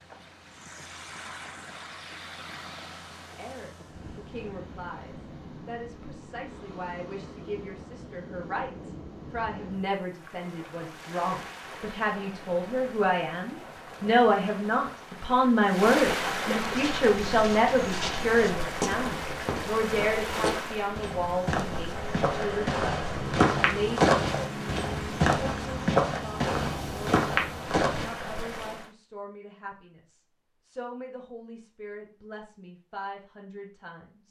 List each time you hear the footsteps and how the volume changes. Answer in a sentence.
You can hear the footsteps from 16.8 to 28.1 s, getting louder.